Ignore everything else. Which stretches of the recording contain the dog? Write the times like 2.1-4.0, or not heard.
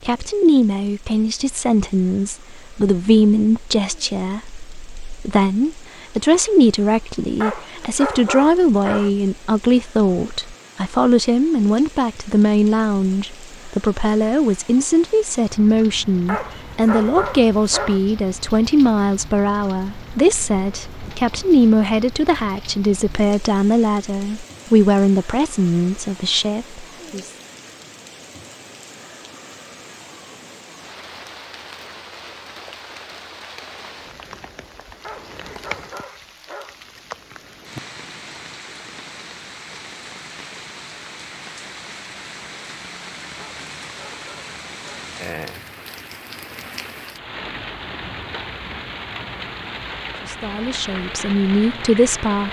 7.4-9.1, 16.2-18.0, 35.0-36.8, 43.4-45.1.